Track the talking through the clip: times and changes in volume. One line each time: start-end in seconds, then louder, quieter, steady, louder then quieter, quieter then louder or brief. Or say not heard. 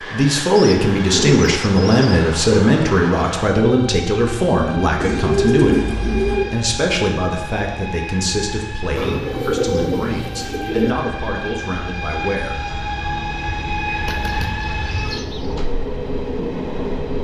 0.0-12.6 quieter.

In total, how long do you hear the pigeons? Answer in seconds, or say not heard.
7 s.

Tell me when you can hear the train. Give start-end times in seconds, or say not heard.
0.0-17.1.